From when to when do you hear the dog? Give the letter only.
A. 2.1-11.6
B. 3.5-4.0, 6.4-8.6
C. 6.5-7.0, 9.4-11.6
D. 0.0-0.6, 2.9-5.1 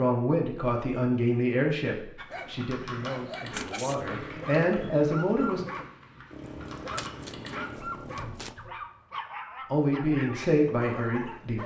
A.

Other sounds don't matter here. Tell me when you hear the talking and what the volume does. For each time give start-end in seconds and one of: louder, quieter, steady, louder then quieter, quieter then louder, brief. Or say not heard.
0.0-5.7 quieter then louder
9.7-11.6 brief.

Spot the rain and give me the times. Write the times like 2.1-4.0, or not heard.
not heard.